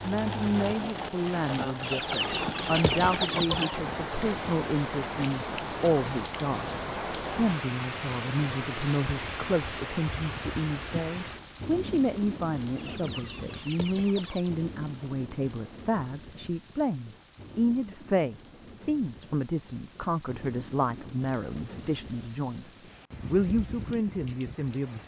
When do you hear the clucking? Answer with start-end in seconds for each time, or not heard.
1.8-3.8, 12.8-14.5.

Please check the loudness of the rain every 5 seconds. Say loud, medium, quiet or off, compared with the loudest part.
loud, loud, medium, quiet, medium.